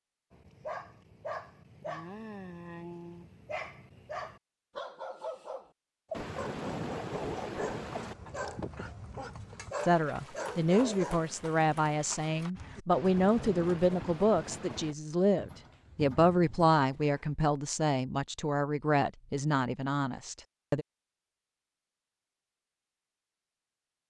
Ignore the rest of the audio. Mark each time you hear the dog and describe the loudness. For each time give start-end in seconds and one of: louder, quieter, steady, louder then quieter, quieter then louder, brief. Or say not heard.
0.3-11.3 steady.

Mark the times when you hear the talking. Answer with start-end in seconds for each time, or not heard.
9.8-20.9.